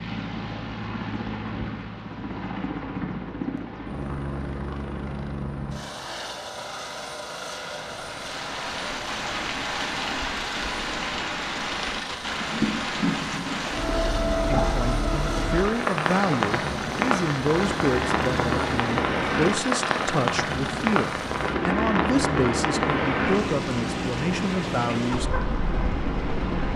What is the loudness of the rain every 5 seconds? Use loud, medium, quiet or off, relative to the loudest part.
off, medium, loud, loud, loud, medium.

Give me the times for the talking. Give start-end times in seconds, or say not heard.
14.4-25.2.